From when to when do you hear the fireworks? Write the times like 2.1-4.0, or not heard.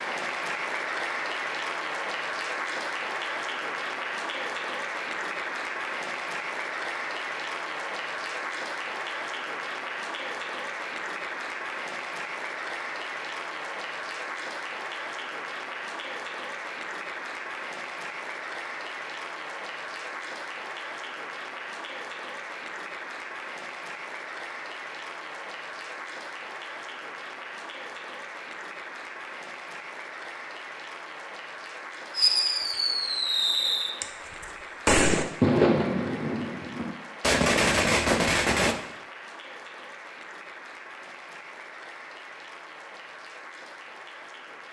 32.1-38.8.